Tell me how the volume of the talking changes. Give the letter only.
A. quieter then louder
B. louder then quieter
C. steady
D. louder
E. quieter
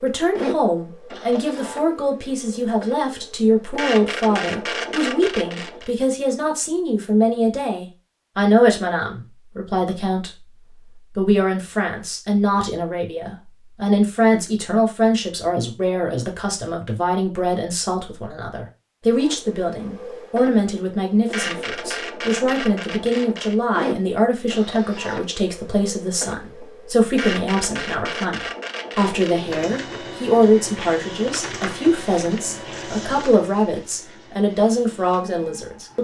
C.